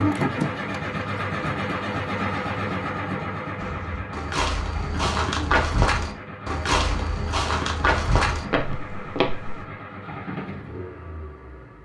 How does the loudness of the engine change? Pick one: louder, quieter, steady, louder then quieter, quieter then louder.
quieter.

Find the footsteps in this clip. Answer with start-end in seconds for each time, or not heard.
3.5-9.7.